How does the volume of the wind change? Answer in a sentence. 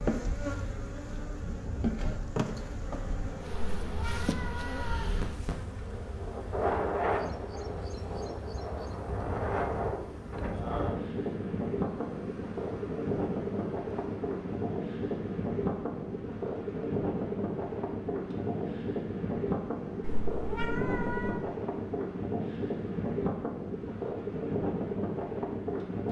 The loudness of the wind goes up.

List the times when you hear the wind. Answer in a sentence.
You can hear the wind from 0.1 to 26.0 s.